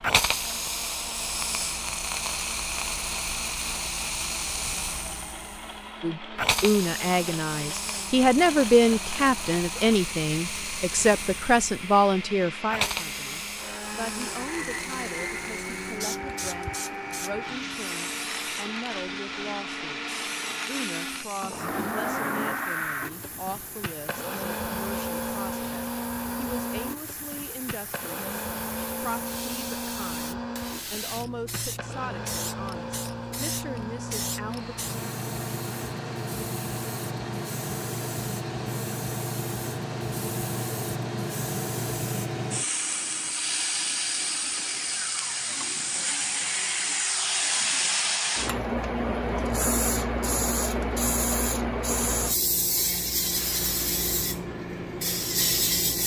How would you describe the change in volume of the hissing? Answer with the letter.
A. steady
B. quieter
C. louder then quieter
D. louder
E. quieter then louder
E.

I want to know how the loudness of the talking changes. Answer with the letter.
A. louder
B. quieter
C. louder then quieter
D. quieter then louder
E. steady
B.